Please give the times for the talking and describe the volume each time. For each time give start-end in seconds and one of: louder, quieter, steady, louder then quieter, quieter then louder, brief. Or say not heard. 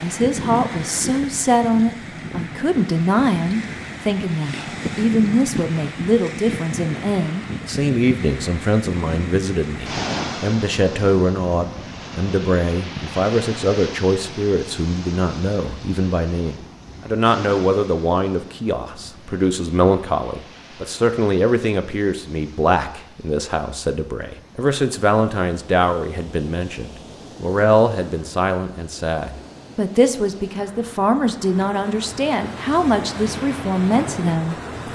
0.0-34.9 steady.